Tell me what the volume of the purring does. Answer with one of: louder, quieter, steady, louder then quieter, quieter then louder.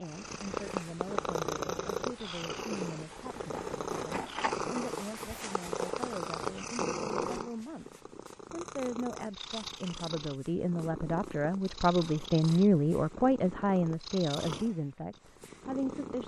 quieter.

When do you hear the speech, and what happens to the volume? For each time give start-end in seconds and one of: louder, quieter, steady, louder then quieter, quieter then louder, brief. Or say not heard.
0.0-16.2 louder.